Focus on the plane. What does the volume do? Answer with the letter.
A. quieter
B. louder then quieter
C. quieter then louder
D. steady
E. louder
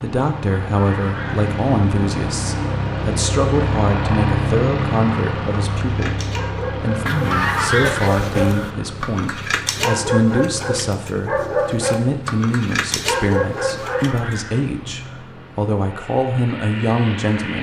A.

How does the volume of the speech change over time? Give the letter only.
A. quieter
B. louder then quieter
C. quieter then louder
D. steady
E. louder
D.